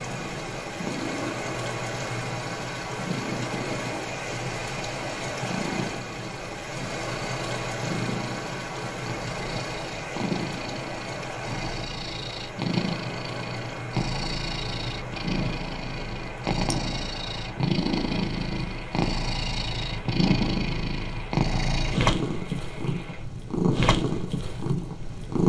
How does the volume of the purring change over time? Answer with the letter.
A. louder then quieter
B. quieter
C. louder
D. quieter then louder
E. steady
C.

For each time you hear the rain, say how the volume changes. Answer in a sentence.
The rain can be heard from 0.0 to 25.2 s, getting quieter.